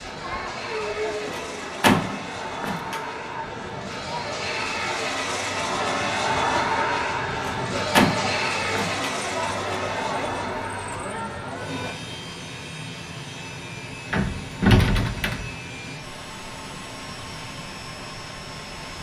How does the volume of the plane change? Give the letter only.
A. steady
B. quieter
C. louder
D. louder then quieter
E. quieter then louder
D.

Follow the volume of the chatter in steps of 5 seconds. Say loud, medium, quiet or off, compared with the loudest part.
loud, loud, loud, off.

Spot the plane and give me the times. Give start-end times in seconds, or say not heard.
0.0-18.9.